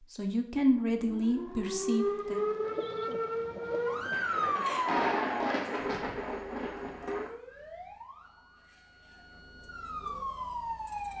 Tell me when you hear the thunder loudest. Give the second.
5 s.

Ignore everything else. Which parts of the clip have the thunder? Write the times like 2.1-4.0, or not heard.
4.1-7.3.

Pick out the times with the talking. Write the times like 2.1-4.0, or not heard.
0.1-2.4.